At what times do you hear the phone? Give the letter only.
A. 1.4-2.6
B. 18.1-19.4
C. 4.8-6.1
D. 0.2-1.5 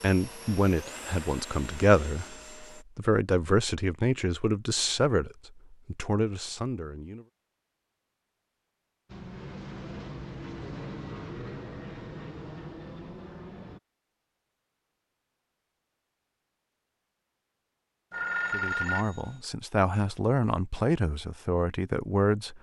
B.